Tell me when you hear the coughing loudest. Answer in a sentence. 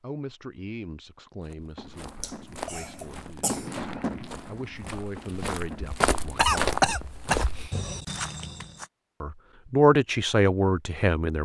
The loudest moment of the coughing is at 7 seconds.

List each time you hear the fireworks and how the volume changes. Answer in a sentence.
You can hear the fireworks from 1.8 to 7.2 s, getting louder then quieter.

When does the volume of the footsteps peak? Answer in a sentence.
The loudest moment of the footsteps is at 7 seconds.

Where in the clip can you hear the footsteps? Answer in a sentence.
You can hear the footsteps from 1.4 to 8.8 s.